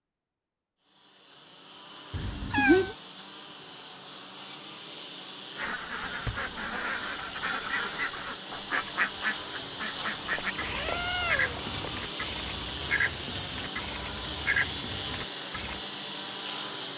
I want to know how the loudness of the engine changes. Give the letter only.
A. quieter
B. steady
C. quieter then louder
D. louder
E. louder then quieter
D.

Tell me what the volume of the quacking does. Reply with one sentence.
The volume of the quacking stays about the same.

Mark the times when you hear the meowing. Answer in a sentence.
You can hear the meowing from 2.1 to 3.0 s and from 10.2 to 12.1 s.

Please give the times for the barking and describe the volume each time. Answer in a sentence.
The barking can't be heard in this clip.